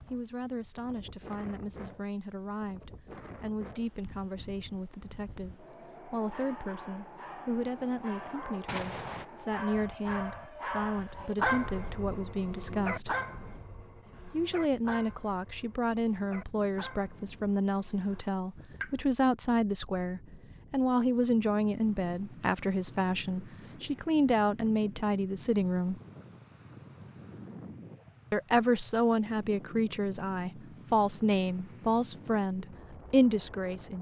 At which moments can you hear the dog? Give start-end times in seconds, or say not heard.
6.3-18.2.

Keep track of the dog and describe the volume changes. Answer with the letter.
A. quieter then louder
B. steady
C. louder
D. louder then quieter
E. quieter
D.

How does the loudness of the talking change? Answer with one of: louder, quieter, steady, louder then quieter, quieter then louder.
louder.